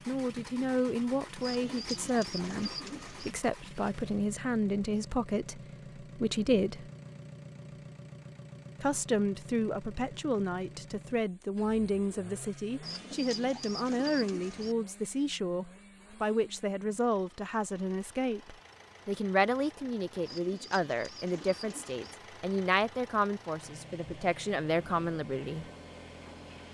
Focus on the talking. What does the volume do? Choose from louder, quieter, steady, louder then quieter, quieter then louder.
steady.